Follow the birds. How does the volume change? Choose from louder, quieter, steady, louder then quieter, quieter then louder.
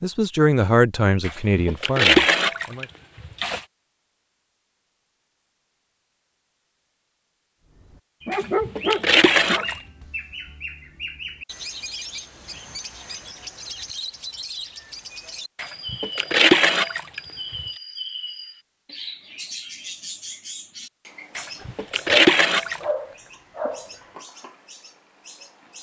quieter.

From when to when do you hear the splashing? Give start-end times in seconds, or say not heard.
1.2-3.6, 8.3-9.8, 15.6-17.6, 21.4-22.8.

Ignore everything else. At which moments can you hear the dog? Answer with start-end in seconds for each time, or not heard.
8.2-9.7, 21.6-23.9.